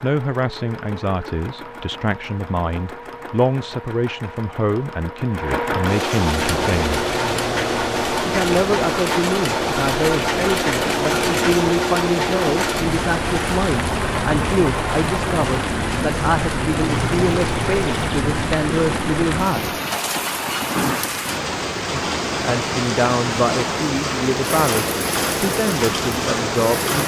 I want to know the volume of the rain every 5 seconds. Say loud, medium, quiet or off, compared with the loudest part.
off, medium, loud, loud, loud, loud.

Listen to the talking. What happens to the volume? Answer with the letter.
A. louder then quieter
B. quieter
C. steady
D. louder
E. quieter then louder
C.